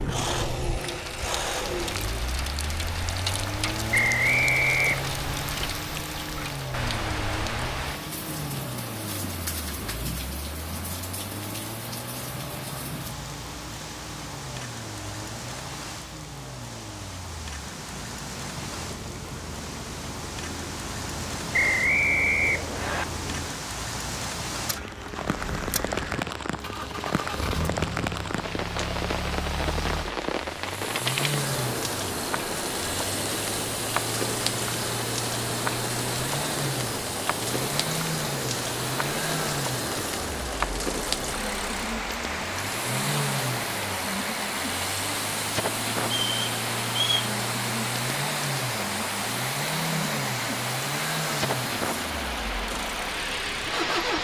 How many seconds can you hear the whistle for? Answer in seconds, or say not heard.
4 s.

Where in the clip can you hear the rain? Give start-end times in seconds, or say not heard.
0.0-54.2.